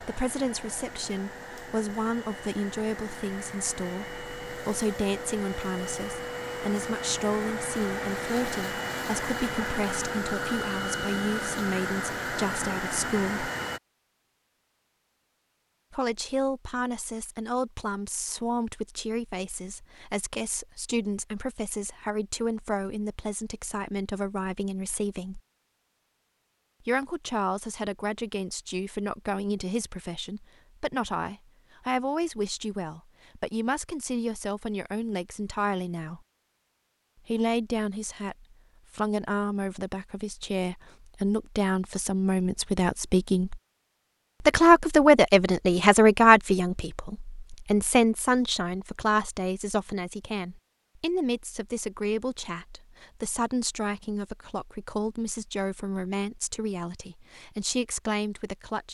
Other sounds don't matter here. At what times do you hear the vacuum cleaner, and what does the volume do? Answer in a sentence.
You can hear the vacuum cleaner from 0.0 to 13.8 s, getting louder.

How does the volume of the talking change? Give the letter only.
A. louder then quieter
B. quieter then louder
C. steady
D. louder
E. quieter
A.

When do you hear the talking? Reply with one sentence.
You can hear the talking from 0.0 to 13.5 s, from 15.9 to 25.4 s, from 26.9 to 36.2 s, from 37.2 to 43.6 s and from 44.4 to 58.8 s.